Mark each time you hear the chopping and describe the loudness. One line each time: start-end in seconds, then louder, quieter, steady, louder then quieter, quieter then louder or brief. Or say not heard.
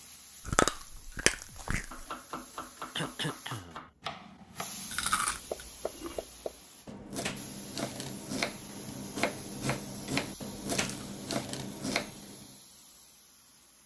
1.2-12.6 louder.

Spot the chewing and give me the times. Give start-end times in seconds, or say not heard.
0.5-2.0, 4.9-6.2, 10.1-11.1.